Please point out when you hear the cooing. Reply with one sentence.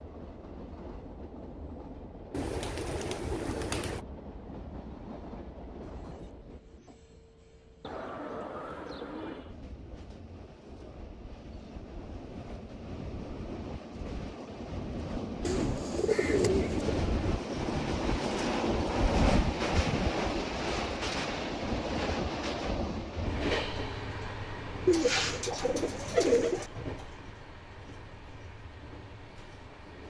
You can hear the cooing from 2.3 to 4.0 s, from 7.8 to 9.6 s, from 15.4 to 17.0 s and from 24.9 to 26.7 s.